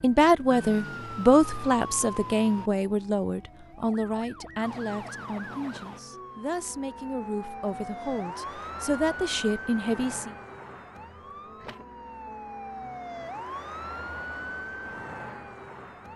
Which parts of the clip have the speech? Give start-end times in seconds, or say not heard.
0.0-10.3.